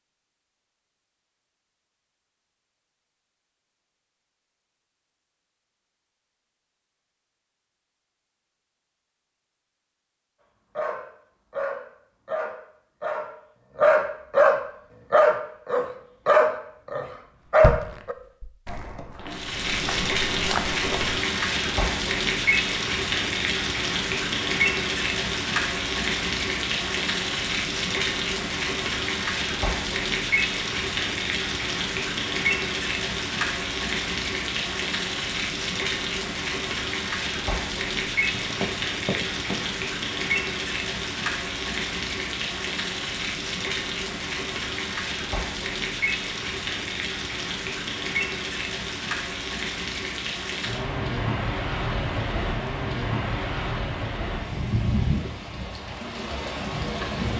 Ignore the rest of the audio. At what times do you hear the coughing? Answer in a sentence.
You can't hear the coughing here.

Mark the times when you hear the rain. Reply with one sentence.
The rain can be heard from 19.1 to 57.3 s.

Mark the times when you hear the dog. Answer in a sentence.
The dog can be heard from 10.8 to 18.1 s.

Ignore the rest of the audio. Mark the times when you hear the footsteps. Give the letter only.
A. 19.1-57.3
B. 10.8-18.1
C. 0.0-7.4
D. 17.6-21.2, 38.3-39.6
D.